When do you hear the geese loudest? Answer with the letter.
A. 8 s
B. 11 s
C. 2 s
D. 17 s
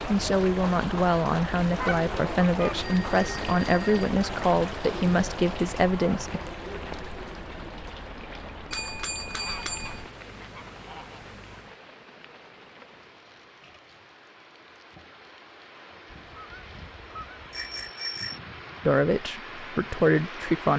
C.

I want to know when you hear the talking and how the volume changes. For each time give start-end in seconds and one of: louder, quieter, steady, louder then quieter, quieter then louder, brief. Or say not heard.
0.1-6.4 steady
18.9-20.7 brief.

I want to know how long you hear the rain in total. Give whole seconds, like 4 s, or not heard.
21 s.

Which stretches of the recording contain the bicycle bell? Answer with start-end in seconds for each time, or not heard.
2.8-4.1, 8.7-10.1, 17.5-18.4.